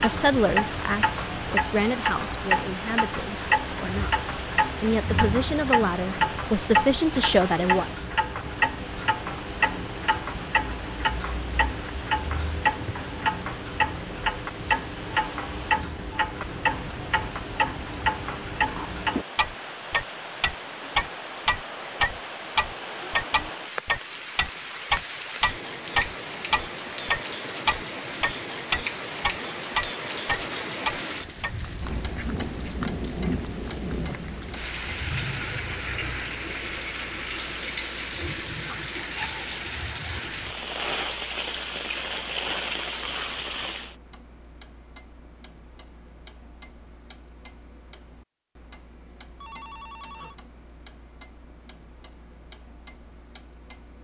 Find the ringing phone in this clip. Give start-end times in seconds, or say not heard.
49.4-50.4.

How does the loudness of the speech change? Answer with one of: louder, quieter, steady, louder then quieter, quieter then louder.
quieter then louder.